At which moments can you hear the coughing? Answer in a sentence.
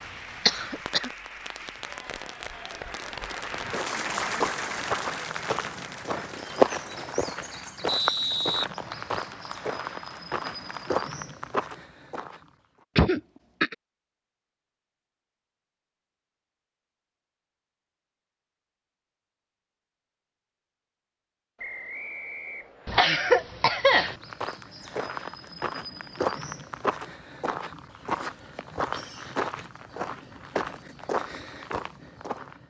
The coughing can be heard from 0.5 to 1.1 s, from 12.9 to 13.8 s and from 22.9 to 24.1 s.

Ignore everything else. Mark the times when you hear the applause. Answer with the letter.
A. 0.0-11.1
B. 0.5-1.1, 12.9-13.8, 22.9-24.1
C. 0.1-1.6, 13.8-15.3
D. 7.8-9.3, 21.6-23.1
A.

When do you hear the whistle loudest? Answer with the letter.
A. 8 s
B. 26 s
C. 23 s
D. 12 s
A.